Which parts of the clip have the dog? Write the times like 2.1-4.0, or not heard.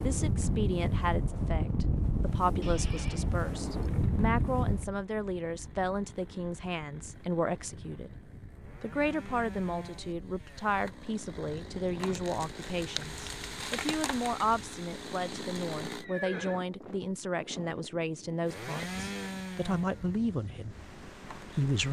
not heard.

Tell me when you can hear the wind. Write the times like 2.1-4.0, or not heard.
0.0-21.8.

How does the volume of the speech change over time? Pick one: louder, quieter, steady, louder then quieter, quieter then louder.
steady.